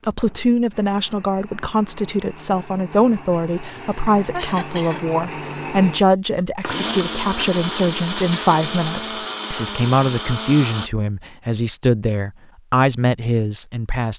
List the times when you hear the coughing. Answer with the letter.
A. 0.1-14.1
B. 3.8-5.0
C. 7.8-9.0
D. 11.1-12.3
B.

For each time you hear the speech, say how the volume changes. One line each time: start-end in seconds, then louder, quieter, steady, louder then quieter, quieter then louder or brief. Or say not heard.
0.1-14.1 steady.